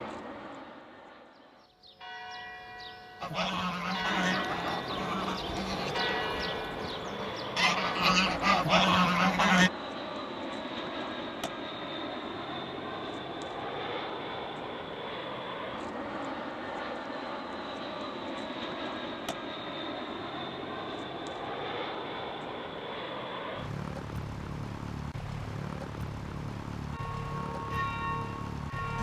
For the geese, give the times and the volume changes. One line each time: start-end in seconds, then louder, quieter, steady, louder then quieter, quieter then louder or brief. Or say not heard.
3.2-9.7 quieter then louder.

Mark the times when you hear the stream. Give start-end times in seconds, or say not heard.
not heard.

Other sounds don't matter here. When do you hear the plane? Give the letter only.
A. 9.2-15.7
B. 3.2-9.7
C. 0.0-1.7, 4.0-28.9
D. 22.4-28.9
C.